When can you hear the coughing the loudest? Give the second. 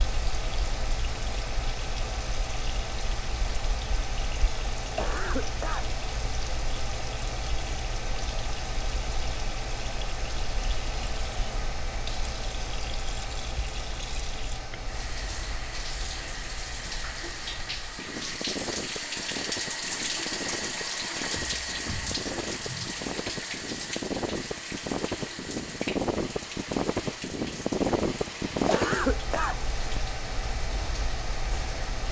29 s.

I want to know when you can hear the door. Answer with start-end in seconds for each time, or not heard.
not heard.